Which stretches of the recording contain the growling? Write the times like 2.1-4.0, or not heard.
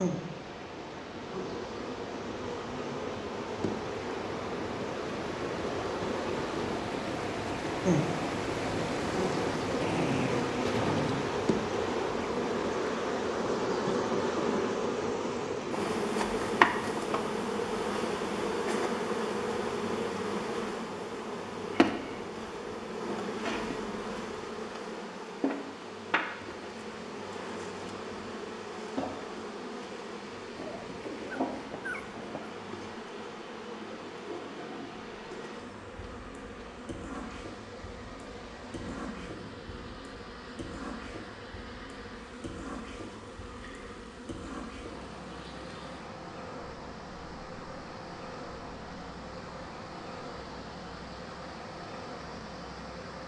9.8-11.3, 30.6-32.5, 38.8-40.0.